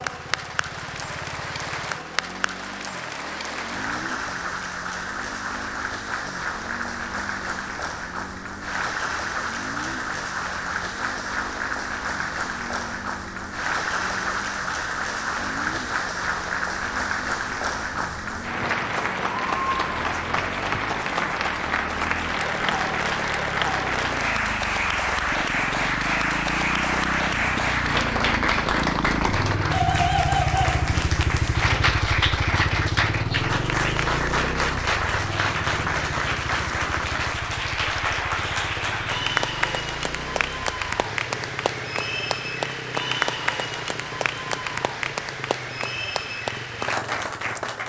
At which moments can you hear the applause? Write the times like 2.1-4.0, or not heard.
0.0-47.8.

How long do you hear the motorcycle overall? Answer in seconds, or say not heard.
48 s.